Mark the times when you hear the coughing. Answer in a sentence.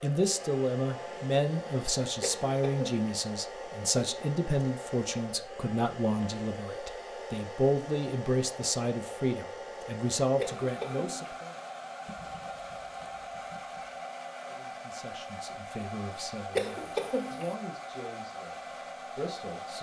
You can hear the coughing from 2.2 to 3.0 s, from 10.3 to 11.4 s and from 16.6 to 17.6 s.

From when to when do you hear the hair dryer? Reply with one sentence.
The hair dryer can be heard from 0.0 to 19.7 s.